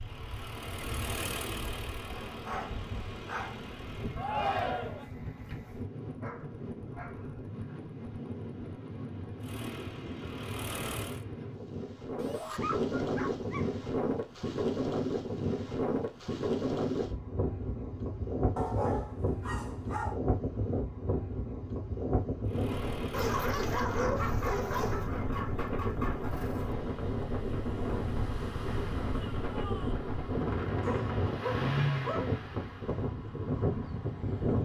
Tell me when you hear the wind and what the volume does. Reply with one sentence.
You can hear the wind from 0.0 to 34.6 s, getting louder.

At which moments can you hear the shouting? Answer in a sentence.
The shouting can be heard from 4.2 to 5.0 s, from 12.2 to 12.6 s and from 29.1 to 30.1 s.